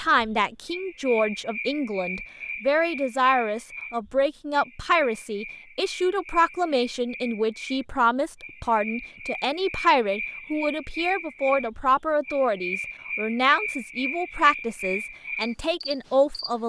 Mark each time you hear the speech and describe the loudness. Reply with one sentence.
The speech can be heard from 0.0 to 16.6 s, at a steady volume.